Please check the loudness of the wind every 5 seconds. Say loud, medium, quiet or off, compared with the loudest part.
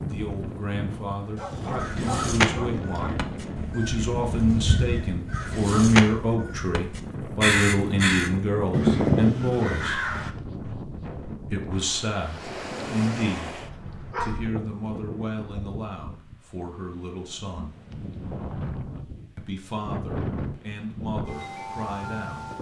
loud, loud, loud, medium, loud.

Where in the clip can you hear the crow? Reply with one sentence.
The crow can be heard from 1.8 to 10.3 s.